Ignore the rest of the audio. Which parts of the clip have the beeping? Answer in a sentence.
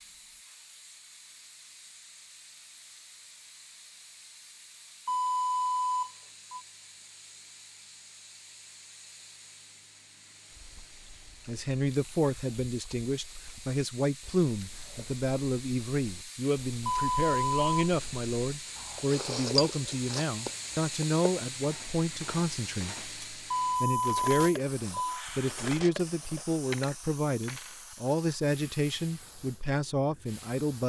You can hear the beeping from 5.0 to 6.6 s, from 16.9 to 17.6 s and from 23.5 to 25.2 s.